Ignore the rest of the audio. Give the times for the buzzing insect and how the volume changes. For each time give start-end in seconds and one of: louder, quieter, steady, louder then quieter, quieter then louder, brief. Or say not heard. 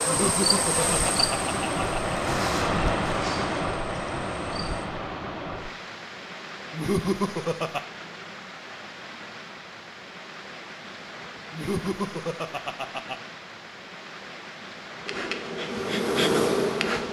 0.0-4.8 quieter
15.1-17.0 brief.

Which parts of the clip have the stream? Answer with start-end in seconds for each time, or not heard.
0.0-17.0.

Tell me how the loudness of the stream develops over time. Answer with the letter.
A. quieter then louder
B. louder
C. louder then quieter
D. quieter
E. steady
D.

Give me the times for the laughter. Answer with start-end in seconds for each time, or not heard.
0.0-2.1, 6.7-7.8, 11.5-13.2.